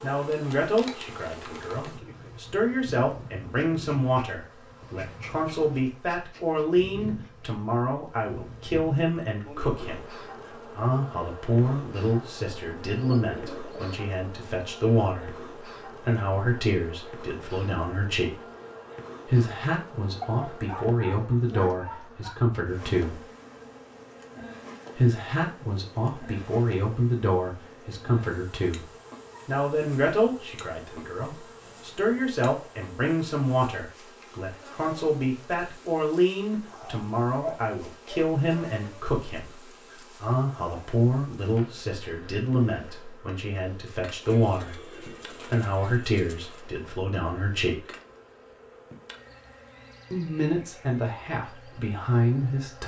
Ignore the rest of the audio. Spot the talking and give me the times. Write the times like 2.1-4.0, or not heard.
0.0-18.4, 19.2-23.2, 24.9-47.9, 50.1-52.8.